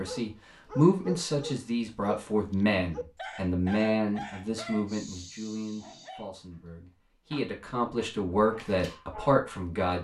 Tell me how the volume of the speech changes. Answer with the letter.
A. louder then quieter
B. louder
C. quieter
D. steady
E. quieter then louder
E.